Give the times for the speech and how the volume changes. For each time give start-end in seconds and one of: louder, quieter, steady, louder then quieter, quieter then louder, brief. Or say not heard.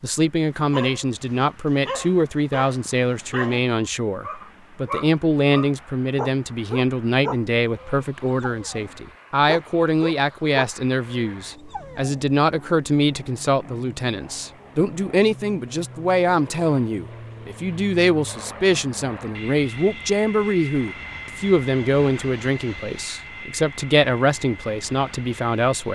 0.0-25.9 steady.